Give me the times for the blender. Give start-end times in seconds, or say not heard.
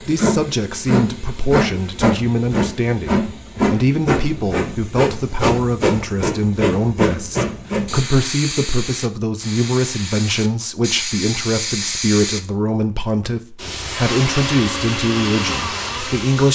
14.0-16.5.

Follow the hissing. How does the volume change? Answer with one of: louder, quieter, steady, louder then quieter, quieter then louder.
quieter.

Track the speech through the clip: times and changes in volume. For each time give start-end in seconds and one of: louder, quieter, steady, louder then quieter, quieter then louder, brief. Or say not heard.
0.0-16.5 steady.